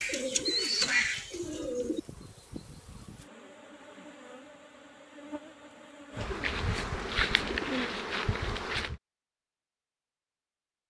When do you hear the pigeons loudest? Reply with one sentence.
The loudest moment of the pigeons is at 1 second.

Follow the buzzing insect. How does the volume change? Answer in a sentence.
The volume of the buzzing insect goes up.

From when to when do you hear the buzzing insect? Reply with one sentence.
You can hear the buzzing insect from 0.0 to 9.0 s.